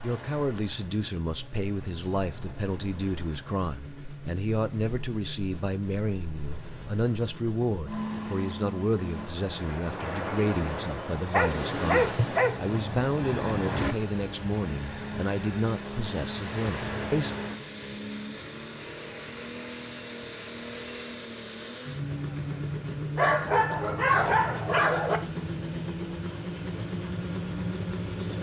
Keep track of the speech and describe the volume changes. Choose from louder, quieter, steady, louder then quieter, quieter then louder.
steady.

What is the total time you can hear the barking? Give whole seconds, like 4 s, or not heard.
3 s.